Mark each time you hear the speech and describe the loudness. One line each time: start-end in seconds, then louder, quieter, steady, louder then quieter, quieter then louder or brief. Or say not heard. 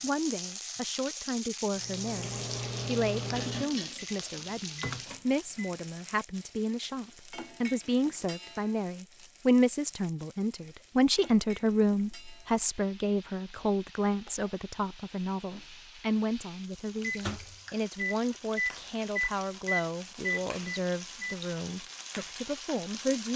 0.0-23.3 louder then quieter.